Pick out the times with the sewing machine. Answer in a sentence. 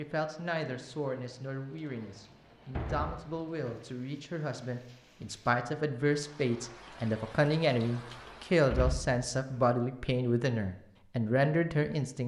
The sewing machine can't be heard in this clip.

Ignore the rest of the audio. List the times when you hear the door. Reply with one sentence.
You can hear the door from 2.7 to 3.8 s and from 8.2 to 9.6 s.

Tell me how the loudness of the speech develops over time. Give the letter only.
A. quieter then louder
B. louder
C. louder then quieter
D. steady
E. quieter
B.